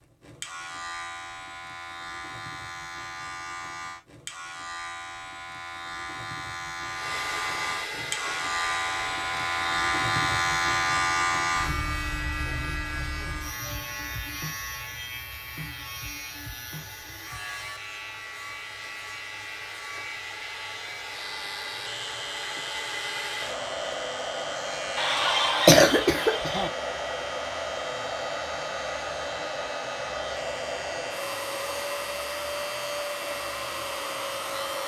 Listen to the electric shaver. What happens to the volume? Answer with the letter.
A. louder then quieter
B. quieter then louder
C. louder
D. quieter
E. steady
A.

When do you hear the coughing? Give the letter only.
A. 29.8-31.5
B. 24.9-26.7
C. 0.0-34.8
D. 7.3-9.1
B.